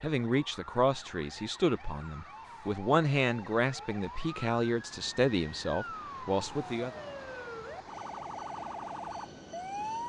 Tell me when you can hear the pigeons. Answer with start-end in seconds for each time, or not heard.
not heard.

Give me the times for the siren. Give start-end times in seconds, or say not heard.
0.0-10.0.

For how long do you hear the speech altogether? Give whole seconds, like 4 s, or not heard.
7 s.